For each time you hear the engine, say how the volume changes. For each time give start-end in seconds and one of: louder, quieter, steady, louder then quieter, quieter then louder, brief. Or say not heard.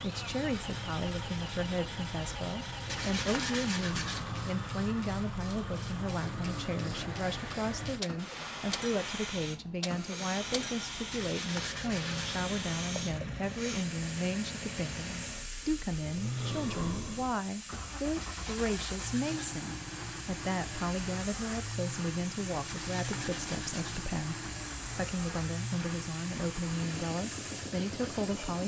0.0-28.6 steady.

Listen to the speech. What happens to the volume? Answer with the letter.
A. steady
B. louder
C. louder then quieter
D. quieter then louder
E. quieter
A.